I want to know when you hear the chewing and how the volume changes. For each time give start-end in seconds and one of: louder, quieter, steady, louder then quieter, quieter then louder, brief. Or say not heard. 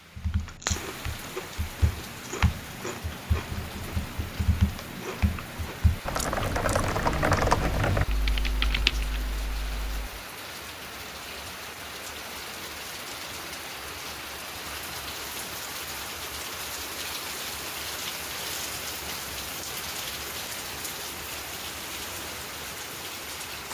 0.3-6.9 steady.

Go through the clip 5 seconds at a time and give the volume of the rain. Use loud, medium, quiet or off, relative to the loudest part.
medium, medium, loud, loud, loud.